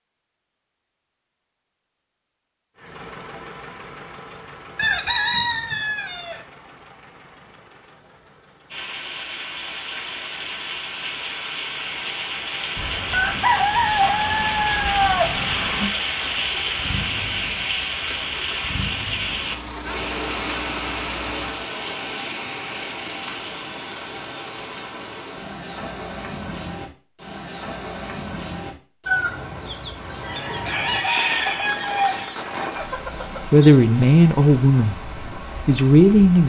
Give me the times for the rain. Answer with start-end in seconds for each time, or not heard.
8.7-36.4.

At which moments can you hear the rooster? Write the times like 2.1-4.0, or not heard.
4.8-6.4, 12.8-15.9, 29.1-33.8.